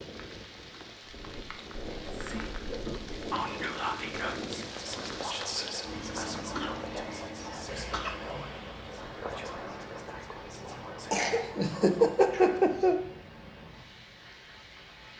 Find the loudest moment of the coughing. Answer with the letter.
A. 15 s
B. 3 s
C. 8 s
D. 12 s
D.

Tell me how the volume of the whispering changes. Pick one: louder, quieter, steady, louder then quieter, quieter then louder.
quieter.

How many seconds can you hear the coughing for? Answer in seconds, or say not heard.
4 s.